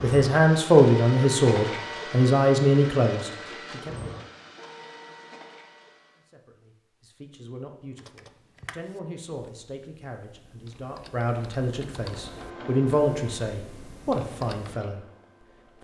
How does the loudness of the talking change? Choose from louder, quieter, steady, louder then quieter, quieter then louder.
quieter then louder.